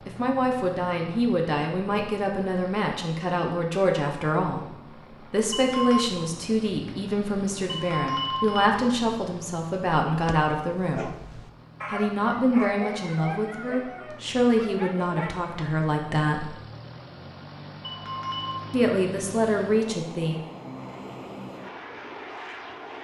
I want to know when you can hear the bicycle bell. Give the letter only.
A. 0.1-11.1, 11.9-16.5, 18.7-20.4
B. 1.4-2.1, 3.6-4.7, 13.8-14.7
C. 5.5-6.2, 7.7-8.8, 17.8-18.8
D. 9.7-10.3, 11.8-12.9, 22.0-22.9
C.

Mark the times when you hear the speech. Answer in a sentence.
The speech can be heard from 0.1 to 11.1 s, from 11.9 to 16.5 s and from 18.7 to 20.4 s.